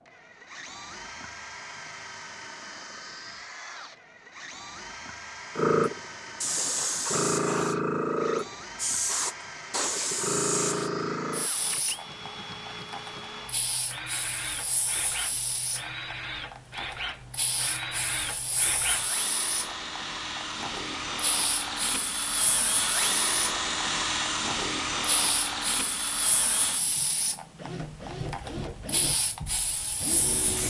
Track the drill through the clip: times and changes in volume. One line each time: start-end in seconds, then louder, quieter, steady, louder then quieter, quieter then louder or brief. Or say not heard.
0.0-30.6 louder.